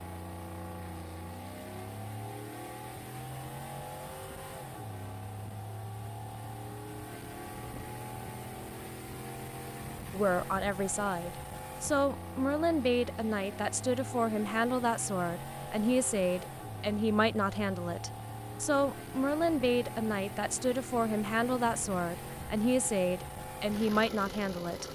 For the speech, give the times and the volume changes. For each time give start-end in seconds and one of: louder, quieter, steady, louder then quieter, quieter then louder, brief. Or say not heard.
10.1-24.8 steady.